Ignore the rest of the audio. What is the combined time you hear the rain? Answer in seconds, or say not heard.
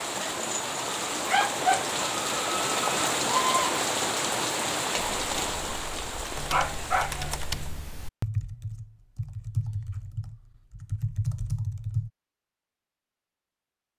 8 s.